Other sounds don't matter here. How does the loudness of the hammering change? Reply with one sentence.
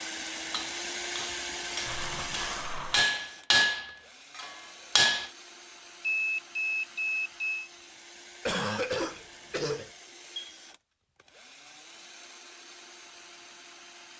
The volume of the hammering goes up, then down.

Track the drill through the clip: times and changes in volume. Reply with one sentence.
You can hear the drill from 0.0 to 14.1 s, getting quieter.